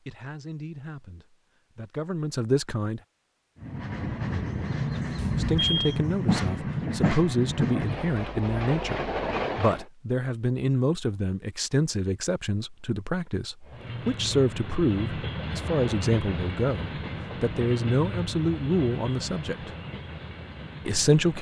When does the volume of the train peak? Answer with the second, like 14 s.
7 s.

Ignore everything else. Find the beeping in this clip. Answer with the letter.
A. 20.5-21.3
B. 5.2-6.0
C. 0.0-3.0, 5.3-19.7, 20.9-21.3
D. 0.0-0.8
B.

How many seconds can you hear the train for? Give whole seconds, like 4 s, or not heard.
14 s.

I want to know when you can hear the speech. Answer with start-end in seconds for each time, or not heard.
0.0-3.0, 5.3-19.7, 20.9-21.3.